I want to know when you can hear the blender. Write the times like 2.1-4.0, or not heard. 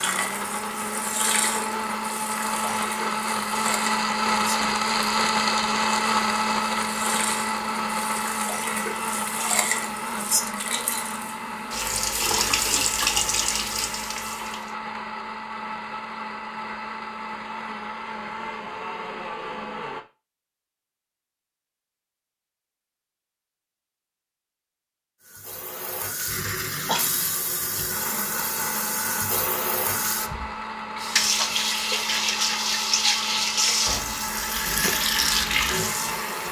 0.0-20.1, 27.9-36.4.